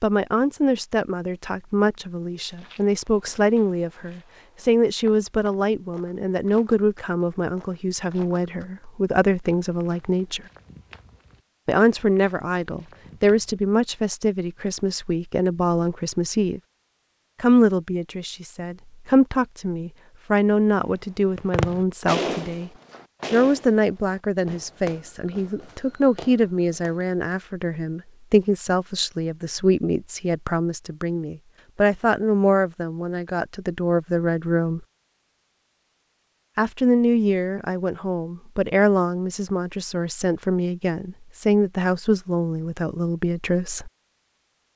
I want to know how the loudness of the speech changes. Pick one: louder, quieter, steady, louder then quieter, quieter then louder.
steady.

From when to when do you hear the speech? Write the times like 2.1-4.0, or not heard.
0.0-10.4, 11.7-16.6, 17.4-22.7, 23.3-34.8, 36.5-43.9.